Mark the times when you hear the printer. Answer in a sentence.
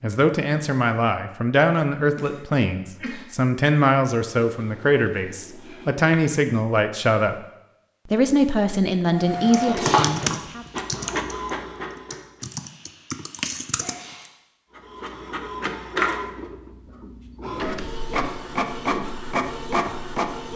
You can hear the printer from 9.1 to 12.4 s and from 14.8 to 20.5 s.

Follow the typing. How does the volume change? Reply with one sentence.
The volume of the typing goes down, then up.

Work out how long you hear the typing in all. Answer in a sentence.
You can hear the typing for 5 seconds altogether.